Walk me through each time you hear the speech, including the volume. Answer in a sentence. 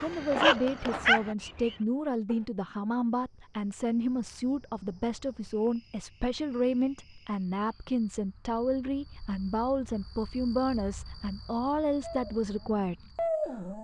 You can hear the speech from 0.0 to 13.7 s, at a steady volume.